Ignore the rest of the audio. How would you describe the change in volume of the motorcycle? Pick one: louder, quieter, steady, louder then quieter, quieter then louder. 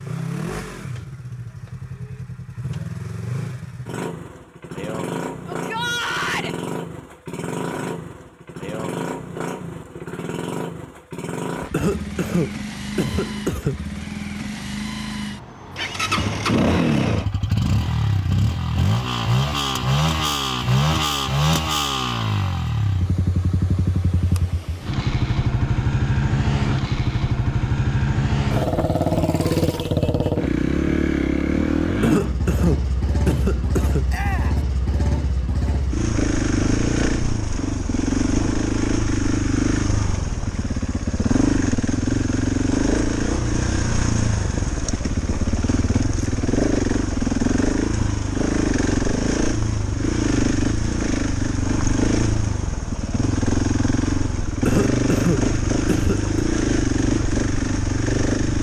louder.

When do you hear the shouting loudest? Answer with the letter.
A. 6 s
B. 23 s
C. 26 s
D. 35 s
A.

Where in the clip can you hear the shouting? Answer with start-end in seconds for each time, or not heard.
5.5-6.5, 34.1-34.6.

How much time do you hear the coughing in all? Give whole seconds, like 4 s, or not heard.
6 s.